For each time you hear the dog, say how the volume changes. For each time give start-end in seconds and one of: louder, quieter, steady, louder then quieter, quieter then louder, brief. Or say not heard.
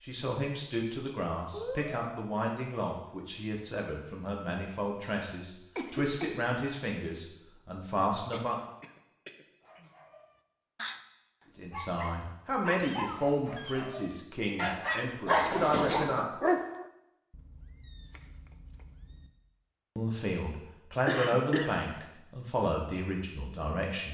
9.7-16.9 louder.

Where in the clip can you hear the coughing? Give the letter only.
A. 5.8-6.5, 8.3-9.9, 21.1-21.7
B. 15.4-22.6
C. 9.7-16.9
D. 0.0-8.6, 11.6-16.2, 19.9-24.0
A.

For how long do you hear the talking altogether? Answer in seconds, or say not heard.
17 s.